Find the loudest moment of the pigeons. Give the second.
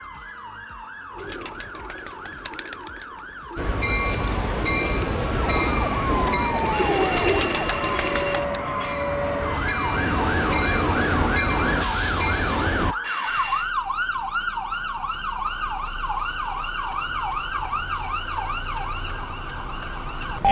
7 s.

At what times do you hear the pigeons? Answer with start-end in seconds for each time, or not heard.
1.1-8.6.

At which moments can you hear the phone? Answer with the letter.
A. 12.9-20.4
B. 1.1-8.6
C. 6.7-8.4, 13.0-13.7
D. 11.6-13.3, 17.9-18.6
C.